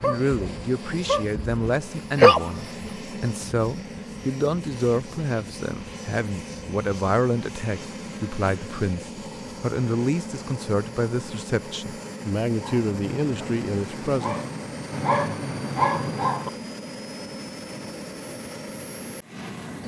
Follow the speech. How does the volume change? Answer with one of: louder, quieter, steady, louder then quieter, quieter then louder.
steady.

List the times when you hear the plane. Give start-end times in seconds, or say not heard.
0.0-19.8.